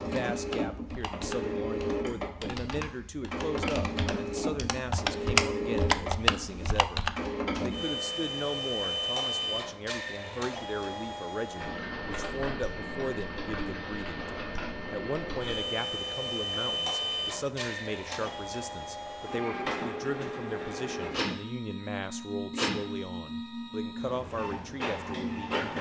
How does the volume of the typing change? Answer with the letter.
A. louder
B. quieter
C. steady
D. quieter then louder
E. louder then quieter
A.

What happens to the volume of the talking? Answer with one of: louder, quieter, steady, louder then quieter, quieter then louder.
steady.